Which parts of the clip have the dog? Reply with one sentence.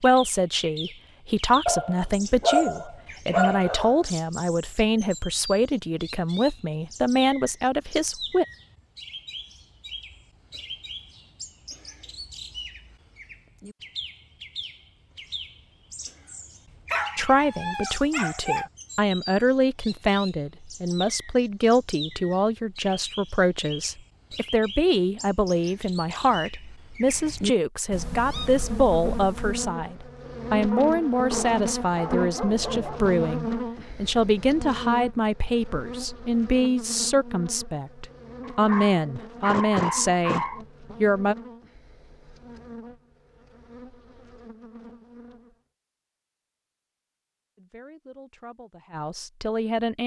The dog can be heard from 1.6 to 4.0 s, from 16.9 to 18.6 s, from 30.7 to 33.0 s and from 38.4 to 40.6 s.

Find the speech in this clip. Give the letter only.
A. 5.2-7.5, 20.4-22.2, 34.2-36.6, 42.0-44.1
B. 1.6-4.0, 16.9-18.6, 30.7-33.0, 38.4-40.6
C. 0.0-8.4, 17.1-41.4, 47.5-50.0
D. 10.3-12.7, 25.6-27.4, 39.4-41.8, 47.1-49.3
C.